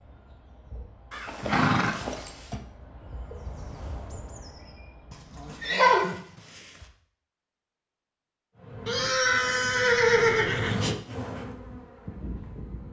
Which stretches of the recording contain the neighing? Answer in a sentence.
You can hear the neighing from 1.1 to 2.6 s, from 5.1 to 6.8 s and from 8.8 to 10.8 s.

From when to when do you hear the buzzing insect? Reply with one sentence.
The buzzing insect can be heard from 0.0 to 5.7 s and from 8.6 to 12.8 s.